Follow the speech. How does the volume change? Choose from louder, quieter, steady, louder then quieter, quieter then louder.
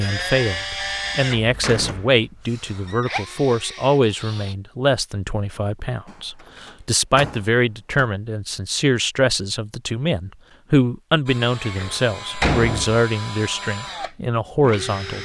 steady.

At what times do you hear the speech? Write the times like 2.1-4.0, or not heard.
0.0-15.2.